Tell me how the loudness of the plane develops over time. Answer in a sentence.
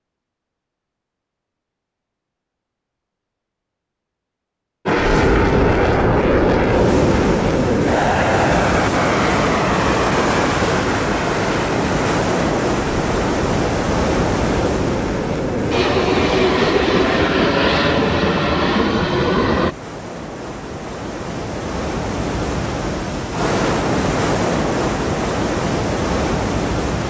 The loudness of the plane goes down, then up.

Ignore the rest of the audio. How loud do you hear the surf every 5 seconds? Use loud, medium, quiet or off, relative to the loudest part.
off, loud, loud, medium, loud, loud.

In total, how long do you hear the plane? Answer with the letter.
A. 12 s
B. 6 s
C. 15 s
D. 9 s
C.